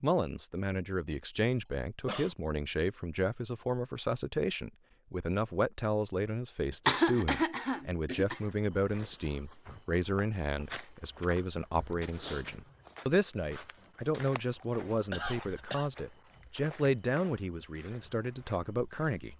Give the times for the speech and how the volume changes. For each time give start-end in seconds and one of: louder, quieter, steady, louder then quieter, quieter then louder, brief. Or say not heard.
0.0-19.3 steady.